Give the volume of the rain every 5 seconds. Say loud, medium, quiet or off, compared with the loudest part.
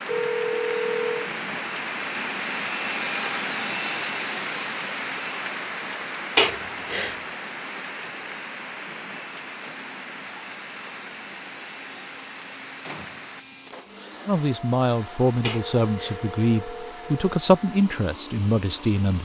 loud, loud, medium, off.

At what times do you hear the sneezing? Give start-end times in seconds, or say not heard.
6.3-7.2, 15.4-16.2.